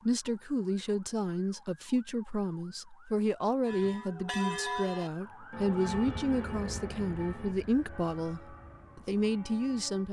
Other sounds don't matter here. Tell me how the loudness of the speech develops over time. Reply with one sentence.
The volume of the speech stays about the same.